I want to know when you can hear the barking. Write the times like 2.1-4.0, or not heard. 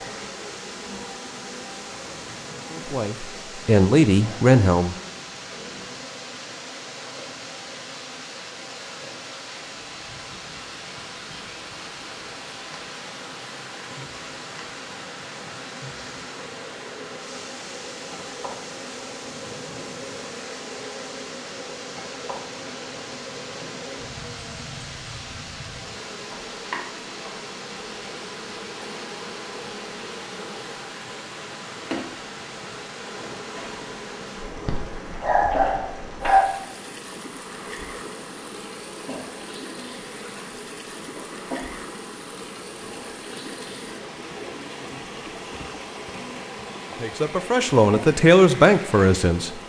34.6-36.5.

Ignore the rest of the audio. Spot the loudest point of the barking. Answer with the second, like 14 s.
36 s.